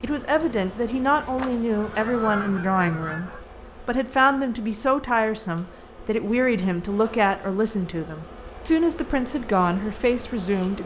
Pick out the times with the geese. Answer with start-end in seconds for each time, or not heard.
1.4-3.4.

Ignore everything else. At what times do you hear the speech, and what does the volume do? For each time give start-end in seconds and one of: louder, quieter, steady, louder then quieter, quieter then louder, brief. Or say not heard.
0.0-10.8 steady.